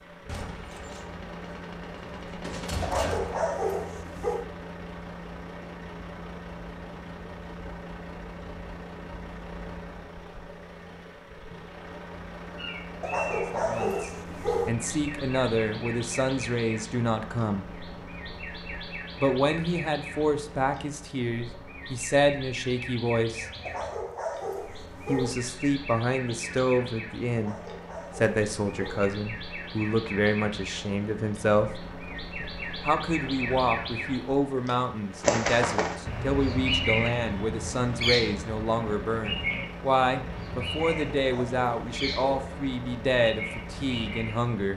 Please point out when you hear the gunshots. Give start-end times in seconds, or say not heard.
0.2-3.4.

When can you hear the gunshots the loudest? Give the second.
3 s.